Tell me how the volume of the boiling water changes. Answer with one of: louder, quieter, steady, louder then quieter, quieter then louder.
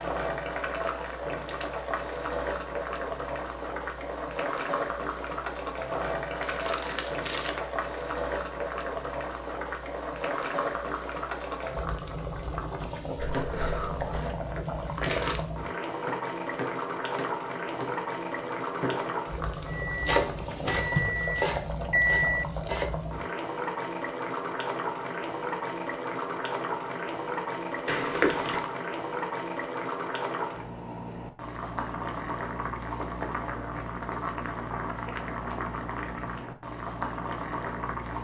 steady.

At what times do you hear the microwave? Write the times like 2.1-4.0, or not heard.
19.6-22.5.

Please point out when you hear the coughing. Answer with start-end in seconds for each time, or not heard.
13.2-14.3.